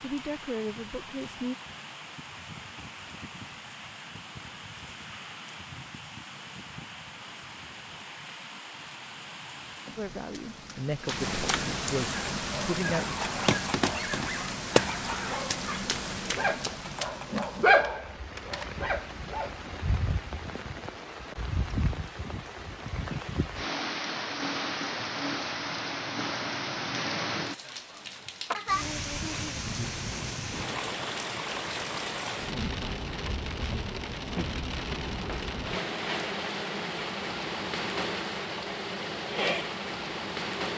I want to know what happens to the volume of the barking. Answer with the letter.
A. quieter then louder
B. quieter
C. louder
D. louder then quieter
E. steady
D.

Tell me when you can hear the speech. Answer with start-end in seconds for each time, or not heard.
0.0-1.6, 9.9-13.2.